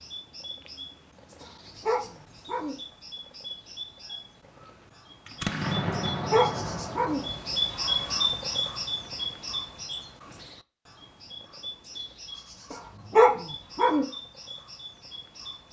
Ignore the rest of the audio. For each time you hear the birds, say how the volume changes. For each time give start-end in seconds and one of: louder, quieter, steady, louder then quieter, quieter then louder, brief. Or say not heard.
0.0-15.6 louder then quieter.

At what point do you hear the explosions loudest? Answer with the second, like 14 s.
6 s.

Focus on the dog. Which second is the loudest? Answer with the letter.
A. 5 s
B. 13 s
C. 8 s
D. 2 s
B.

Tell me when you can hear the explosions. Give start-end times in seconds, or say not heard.
5.2-7.6.